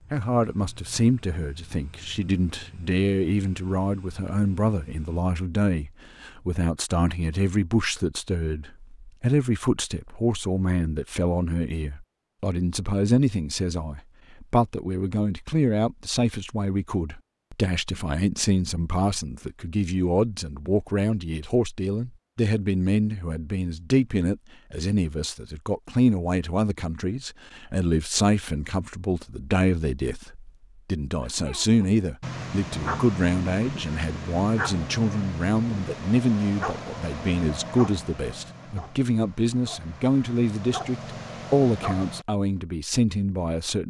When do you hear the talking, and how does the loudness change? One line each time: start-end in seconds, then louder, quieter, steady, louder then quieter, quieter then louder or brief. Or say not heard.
0.1-43.8 steady.